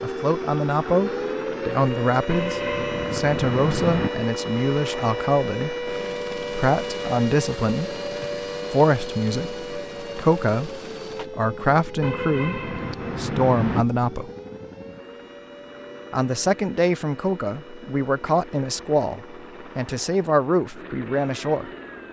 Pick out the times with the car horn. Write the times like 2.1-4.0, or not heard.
2.2-4.1, 12.0-13.8.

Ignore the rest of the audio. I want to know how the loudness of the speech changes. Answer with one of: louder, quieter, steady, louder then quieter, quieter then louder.
steady.